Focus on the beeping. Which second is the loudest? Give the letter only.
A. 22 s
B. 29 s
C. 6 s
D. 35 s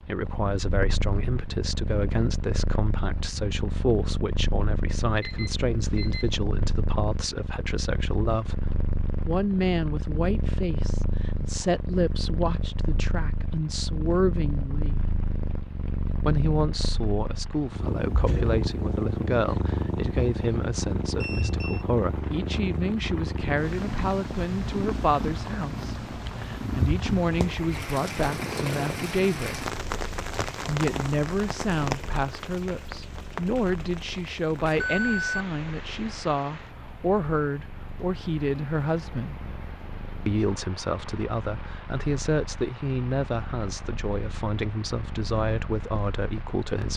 D.